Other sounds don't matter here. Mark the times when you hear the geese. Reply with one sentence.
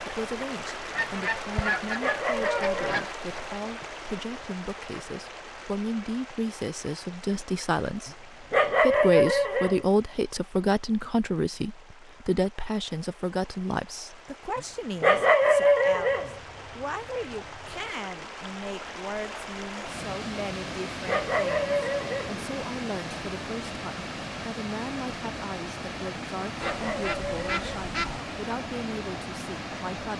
The geese can be heard from 0.9 to 3.1 s, from 15.9 to 17.9 s and from 26.6 to 28.2 s.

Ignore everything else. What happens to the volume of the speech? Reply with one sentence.
The volume of the speech goes up, then down.